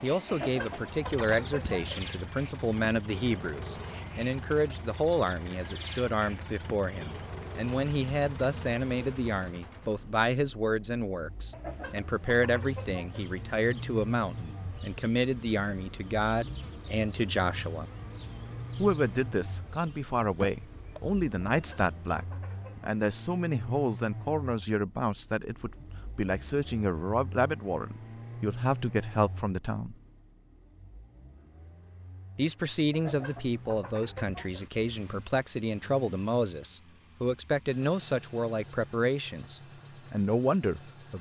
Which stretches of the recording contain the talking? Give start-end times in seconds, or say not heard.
0.0-17.9, 18.8-29.9, 32.4-41.1.